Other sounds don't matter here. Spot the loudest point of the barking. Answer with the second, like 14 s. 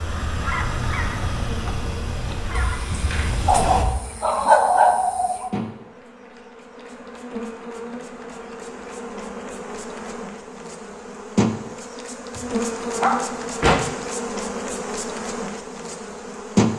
5 s.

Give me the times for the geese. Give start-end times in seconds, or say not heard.
0.0-3.9.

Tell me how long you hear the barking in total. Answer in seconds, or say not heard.
4 s.